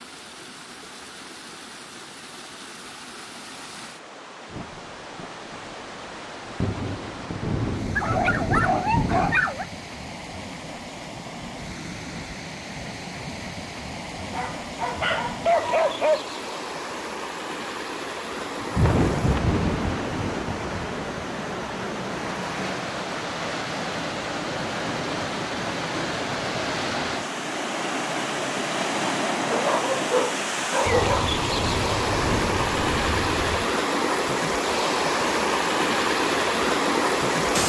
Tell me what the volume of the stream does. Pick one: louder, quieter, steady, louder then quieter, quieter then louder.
louder.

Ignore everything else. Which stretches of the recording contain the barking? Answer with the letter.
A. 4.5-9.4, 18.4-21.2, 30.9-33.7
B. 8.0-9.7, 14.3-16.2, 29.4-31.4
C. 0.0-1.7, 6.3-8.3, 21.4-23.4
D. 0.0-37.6
B.